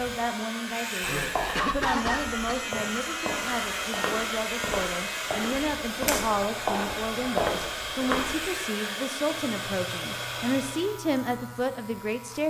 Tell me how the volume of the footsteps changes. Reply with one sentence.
The loudness of the footsteps goes up.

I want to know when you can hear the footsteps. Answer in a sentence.
The footsteps can be heard from 1.2 to 8.4 s.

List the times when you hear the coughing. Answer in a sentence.
The coughing can be heard from 1.0 to 2.6 s.